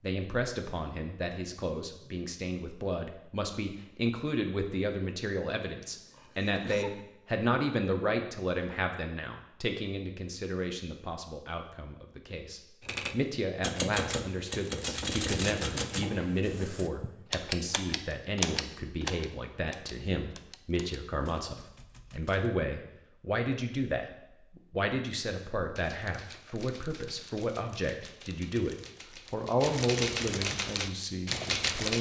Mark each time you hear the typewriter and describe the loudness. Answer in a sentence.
The typewriter can be heard from 12.8 to 22.5 s, getting quieter; and from 25.8 to 31.9 s, getting louder.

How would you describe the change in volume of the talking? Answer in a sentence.
The volume of the talking stays about the same.